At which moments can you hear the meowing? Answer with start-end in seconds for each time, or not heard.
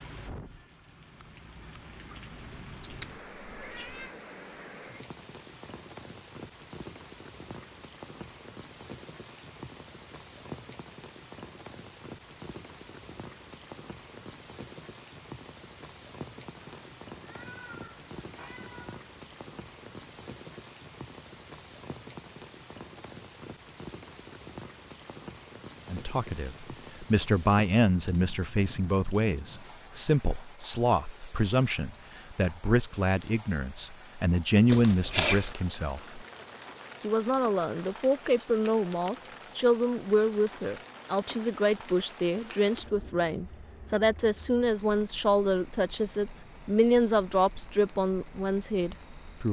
2.8-4.1, 16.6-19.0, 34.6-35.5.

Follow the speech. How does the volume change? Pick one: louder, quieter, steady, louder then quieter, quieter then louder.
steady.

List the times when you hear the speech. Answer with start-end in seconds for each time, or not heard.
25.9-36.2, 37.0-49.4.